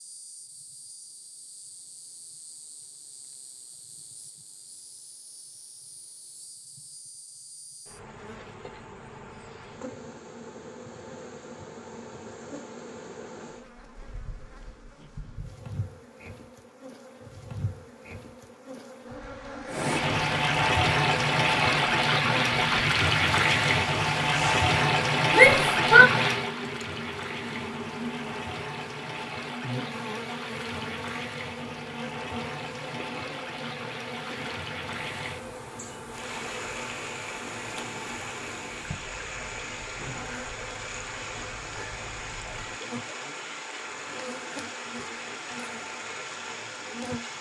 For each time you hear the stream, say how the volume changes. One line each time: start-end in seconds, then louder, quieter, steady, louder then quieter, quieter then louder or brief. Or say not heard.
19.6-47.3 quieter.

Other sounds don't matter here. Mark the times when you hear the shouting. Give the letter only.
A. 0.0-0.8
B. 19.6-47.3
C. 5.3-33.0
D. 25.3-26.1
D.